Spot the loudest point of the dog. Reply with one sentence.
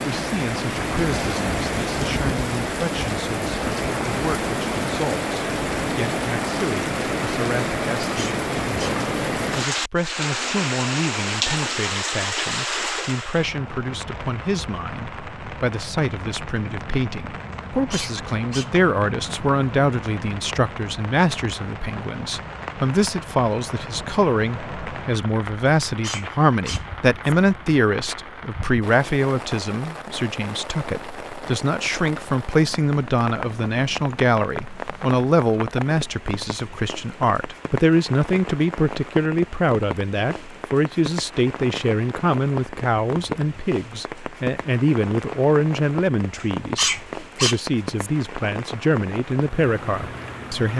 The loudest moment of the dog is at 47 seconds.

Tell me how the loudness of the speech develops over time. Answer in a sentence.
The loudness of the speech goes up.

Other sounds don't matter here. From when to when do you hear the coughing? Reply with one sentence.
The coughing can't be heard in this clip.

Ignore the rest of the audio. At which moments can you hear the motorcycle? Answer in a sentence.
The motorcycle can't be heard in this clip.